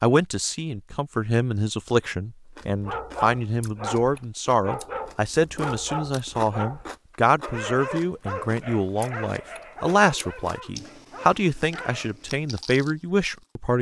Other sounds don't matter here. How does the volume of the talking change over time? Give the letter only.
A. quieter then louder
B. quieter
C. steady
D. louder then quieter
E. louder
C.